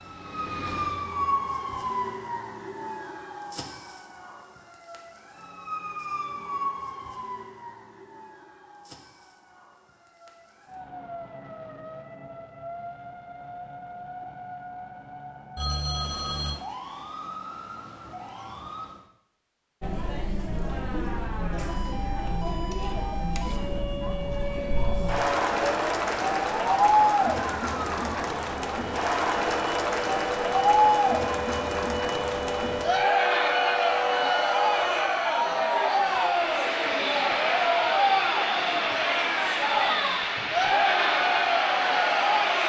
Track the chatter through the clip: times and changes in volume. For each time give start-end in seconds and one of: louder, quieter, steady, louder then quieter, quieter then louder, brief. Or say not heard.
19.8-42.6 louder.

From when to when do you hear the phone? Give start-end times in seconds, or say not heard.
15.6-16.6.